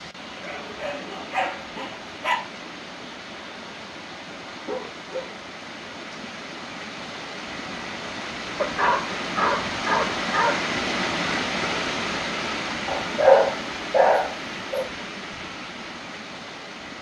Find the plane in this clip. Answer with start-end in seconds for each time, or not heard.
not heard.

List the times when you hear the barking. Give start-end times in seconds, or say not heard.
0.4-2.4, 4.6-5.5, 8.6-10.6, 12.8-14.8.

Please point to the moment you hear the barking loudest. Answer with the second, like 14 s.
13 s.